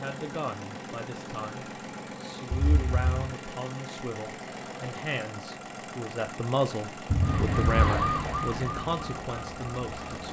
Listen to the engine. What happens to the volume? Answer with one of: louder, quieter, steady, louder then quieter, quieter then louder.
steady.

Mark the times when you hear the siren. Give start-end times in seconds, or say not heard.
7.2-10.2.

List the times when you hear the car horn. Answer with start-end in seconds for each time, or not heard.
2.5-3.1, 7.0-7.9.